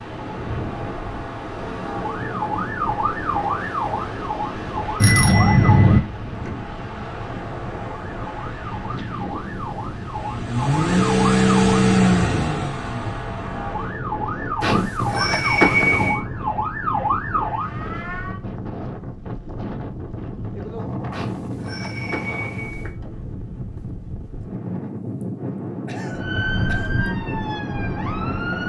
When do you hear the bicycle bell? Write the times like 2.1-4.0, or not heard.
5.0-6.0, 14.6-16.2, 21.1-22.9.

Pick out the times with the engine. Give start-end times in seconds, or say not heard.
10.1-13.7.